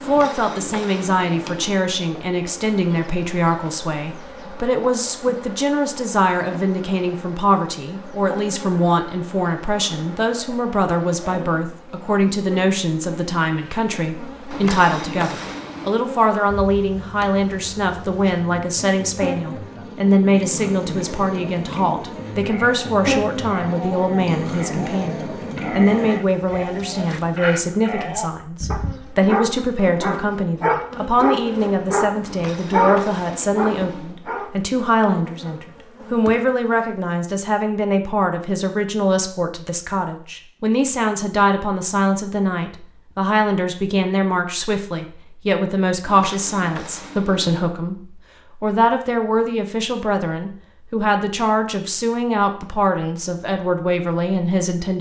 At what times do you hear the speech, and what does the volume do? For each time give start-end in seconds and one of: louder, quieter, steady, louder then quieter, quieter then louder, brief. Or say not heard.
0.0-54.9 steady.